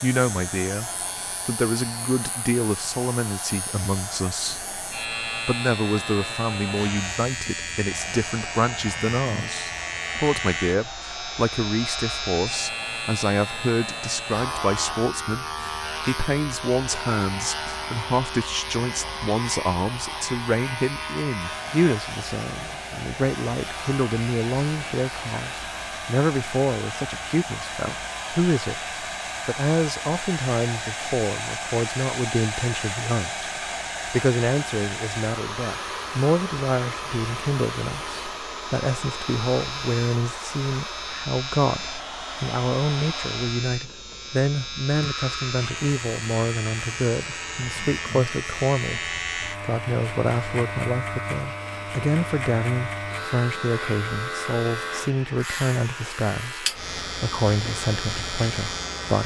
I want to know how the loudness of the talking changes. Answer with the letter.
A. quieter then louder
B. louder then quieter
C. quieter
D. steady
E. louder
D.